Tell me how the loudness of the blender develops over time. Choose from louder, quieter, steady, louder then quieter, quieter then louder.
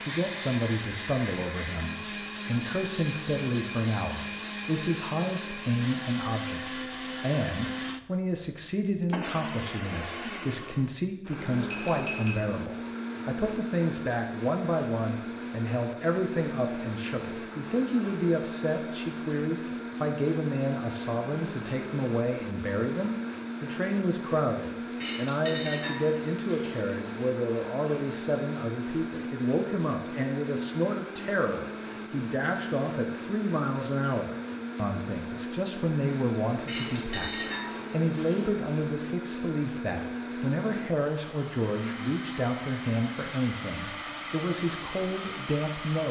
steady.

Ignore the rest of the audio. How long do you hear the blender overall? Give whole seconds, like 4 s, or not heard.
46 s.